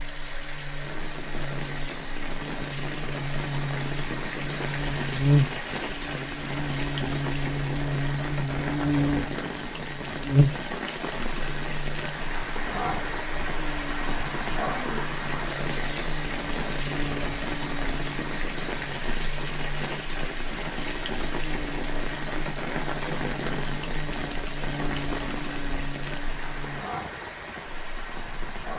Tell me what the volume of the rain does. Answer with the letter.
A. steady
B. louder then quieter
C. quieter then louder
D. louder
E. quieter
A.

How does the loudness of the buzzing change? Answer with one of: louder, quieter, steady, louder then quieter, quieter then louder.
quieter.